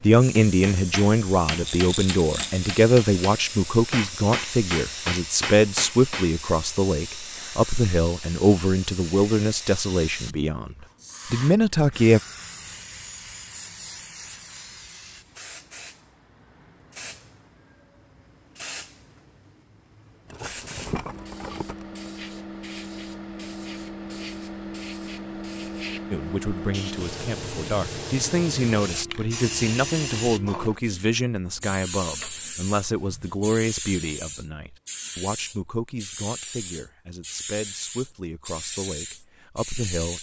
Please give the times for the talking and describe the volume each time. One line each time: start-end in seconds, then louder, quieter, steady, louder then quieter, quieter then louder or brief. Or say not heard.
0.0-12.2 steady
26.1-40.1 quieter.